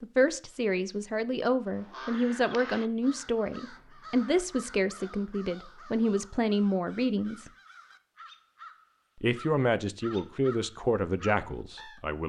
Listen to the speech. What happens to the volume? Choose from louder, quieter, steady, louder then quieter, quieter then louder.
steady.